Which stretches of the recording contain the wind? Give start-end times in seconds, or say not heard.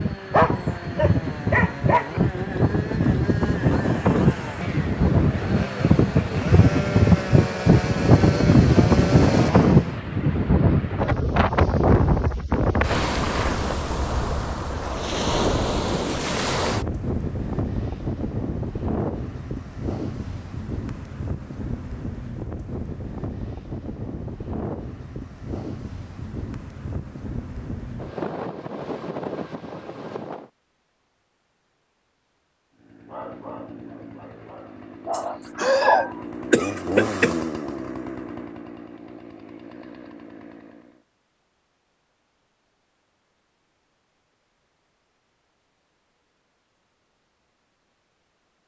0.0-30.5.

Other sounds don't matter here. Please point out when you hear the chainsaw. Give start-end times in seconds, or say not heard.
0.0-10.0, 32.8-41.0.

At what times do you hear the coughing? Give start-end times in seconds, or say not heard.
35.1-37.4.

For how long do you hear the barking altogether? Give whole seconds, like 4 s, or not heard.
4 s.